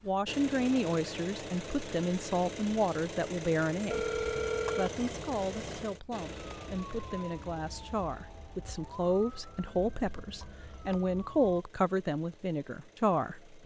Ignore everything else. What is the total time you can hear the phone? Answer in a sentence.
You can hear the phone for 2 seconds altogether.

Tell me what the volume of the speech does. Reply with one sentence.
The volume of the speech goes down, then up.